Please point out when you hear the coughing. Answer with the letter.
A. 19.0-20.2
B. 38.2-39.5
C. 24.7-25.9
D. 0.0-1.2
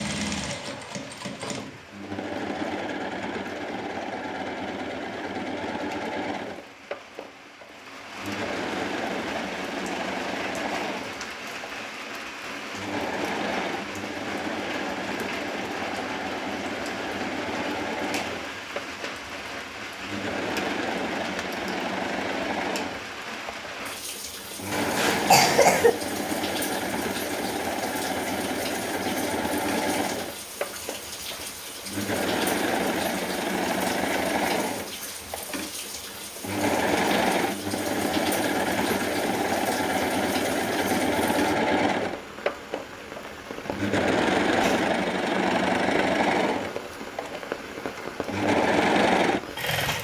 C.